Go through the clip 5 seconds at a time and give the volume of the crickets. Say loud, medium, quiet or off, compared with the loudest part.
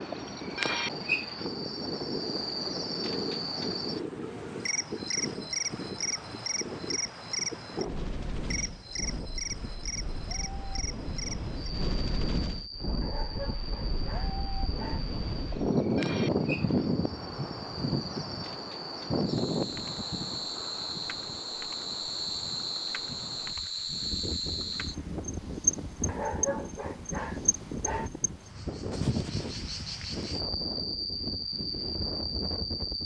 loud, loud, medium, medium, loud, loud, loud.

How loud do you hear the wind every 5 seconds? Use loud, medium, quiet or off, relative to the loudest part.
medium, medium, medium, loud, quiet, medium, medium.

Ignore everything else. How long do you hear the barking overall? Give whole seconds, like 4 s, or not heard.
4 s.